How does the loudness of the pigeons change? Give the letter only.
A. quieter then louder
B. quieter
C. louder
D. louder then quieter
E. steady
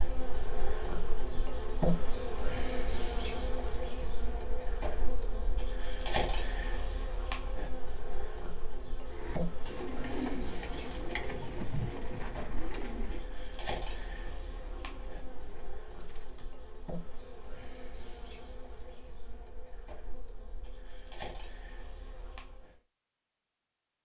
B.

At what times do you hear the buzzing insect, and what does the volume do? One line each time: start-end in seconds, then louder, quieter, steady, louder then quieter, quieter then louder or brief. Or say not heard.
0.0-22.8 quieter.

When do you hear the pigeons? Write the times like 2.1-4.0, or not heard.
9.1-16.6.